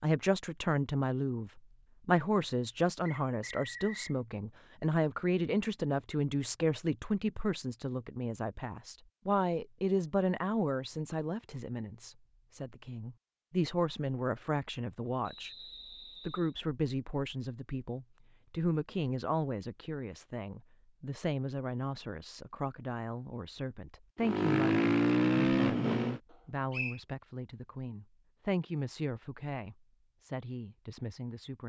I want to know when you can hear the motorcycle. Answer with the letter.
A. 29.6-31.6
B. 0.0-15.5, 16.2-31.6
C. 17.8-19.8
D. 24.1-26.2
D.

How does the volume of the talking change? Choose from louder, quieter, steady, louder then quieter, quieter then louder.
quieter.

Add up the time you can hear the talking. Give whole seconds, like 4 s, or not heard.
31 s.